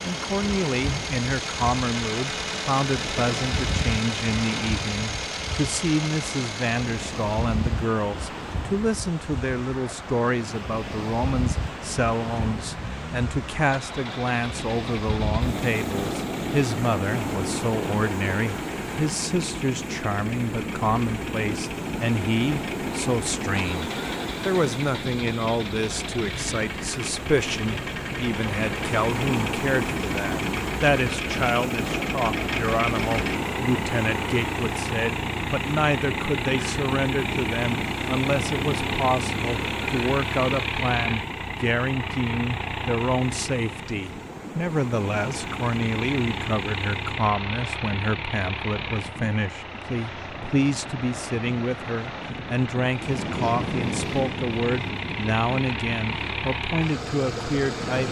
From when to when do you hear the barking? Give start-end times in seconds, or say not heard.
not heard.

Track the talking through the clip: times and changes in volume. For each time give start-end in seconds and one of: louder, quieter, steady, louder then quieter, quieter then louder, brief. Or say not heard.
0.0-58.0 steady.